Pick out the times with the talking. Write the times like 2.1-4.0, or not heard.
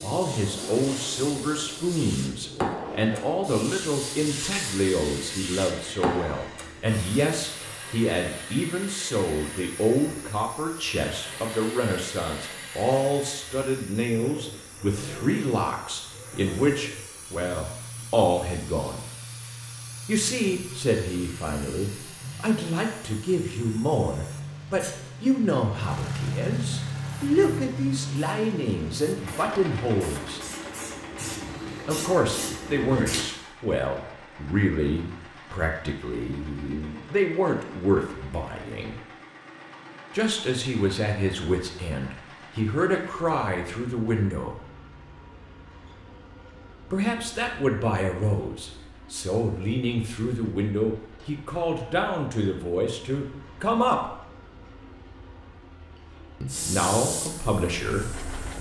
0.0-19.0, 20.1-30.4, 31.9-39.0, 40.1-44.6, 46.9-54.1, 56.4-58.2.